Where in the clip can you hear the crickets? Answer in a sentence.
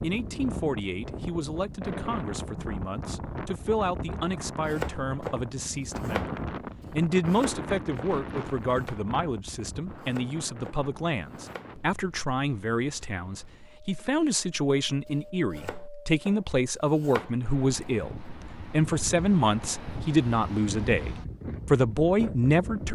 The crickets can't be heard in this clip.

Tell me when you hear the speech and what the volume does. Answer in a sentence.
The speech can be heard from 0.0 to 22.9 s, getting louder.